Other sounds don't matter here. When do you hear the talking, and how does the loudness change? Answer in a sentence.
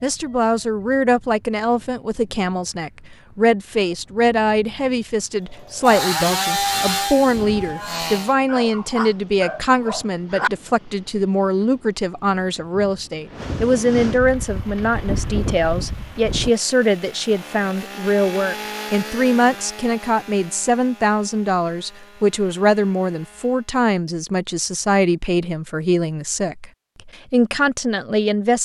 The talking can be heard from 0.0 to 28.6 s, at a steady volume.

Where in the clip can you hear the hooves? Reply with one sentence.
You can't hear the hooves here.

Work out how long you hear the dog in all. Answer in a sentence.
You can hear the dog for 2 seconds altogether.